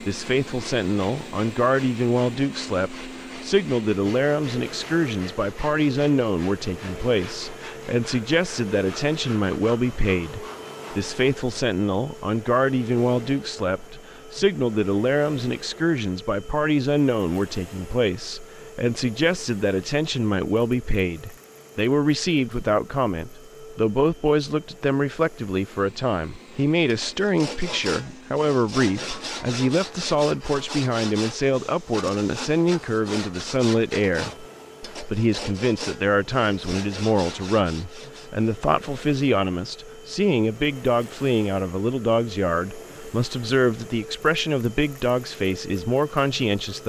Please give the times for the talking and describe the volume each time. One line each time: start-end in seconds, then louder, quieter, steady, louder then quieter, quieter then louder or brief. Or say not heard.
0.0-46.8 steady.